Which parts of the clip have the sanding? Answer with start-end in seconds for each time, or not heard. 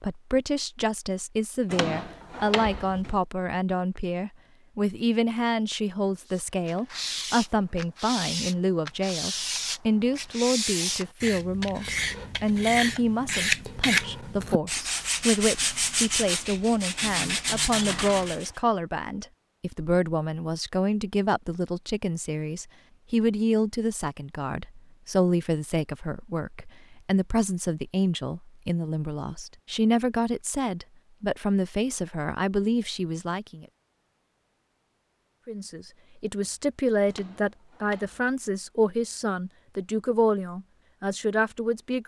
6.2-18.5.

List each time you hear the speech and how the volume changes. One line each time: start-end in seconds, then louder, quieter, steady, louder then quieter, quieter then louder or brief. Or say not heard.
0.0-33.6 steady
35.5-42.0 steady.